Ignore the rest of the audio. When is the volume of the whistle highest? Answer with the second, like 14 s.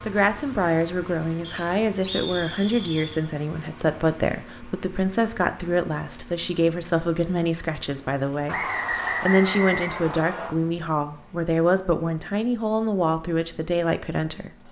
9 s.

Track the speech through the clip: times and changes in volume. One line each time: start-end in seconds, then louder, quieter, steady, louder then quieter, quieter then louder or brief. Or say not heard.
0.1-14.6 steady.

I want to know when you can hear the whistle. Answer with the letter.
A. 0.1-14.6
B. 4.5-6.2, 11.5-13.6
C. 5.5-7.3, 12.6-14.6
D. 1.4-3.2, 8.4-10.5
D.